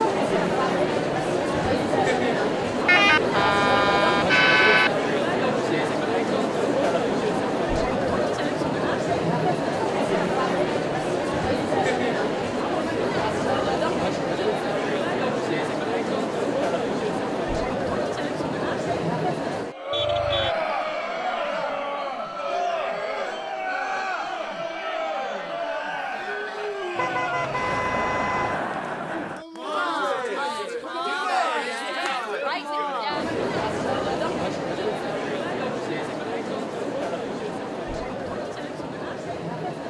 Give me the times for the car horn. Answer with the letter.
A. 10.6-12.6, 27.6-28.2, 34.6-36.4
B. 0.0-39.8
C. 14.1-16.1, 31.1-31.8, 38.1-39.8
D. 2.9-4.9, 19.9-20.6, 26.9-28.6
D.